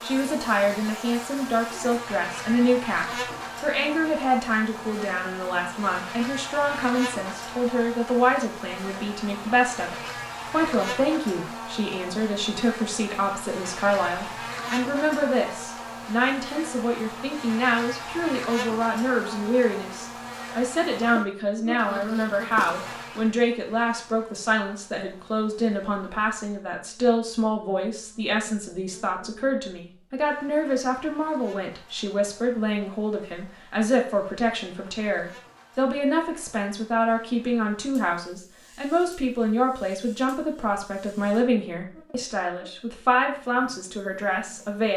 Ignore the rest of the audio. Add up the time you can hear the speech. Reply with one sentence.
The speech can be heard for 45 seconds in total.